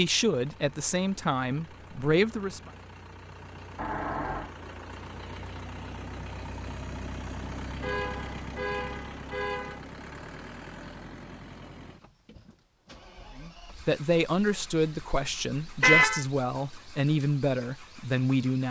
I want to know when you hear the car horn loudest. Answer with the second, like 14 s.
16 s.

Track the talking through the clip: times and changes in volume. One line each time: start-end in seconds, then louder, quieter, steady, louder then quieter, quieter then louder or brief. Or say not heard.
0.0-2.7 brief
13.4-18.6 steady.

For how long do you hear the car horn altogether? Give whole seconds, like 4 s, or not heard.
5 s.